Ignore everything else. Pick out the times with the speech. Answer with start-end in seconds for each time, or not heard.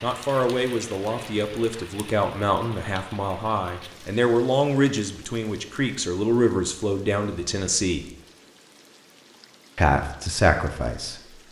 0.0-8.1, 9.8-11.2.